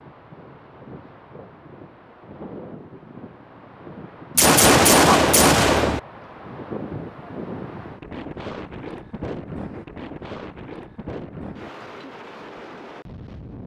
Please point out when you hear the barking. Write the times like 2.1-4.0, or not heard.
not heard.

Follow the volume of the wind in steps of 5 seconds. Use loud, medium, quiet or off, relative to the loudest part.
medium, loud, loud.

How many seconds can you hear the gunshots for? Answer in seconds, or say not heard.
2 s.